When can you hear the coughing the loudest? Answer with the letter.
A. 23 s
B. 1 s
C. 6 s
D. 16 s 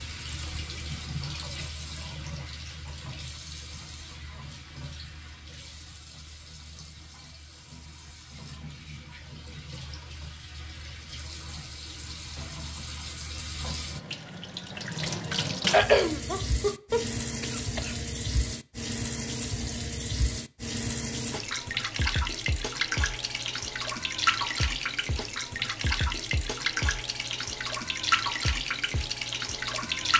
D.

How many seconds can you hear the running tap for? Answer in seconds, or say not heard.
30 s.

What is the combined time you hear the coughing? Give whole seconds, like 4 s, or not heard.
2 s.